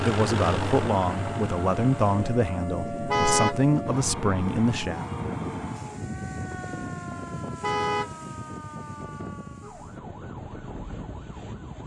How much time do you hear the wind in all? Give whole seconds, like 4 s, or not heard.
12 s.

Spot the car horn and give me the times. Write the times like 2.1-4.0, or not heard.
3.0-3.5, 7.6-8.1.